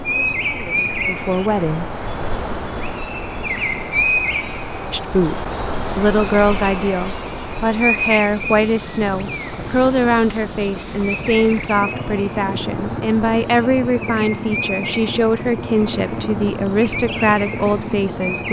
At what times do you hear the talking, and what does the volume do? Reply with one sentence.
The talking can be heard briefly from 0.1 to 1.9 s; and from 4.9 to 18.4 s, at a steady volume.